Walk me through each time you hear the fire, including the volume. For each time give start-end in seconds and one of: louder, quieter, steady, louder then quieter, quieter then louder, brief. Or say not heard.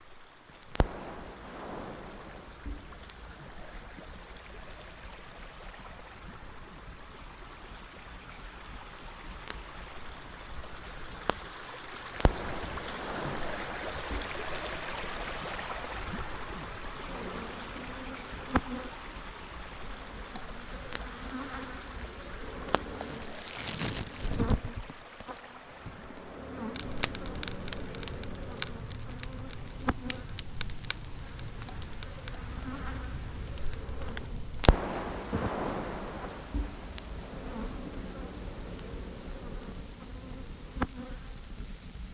0.5-42.1 louder.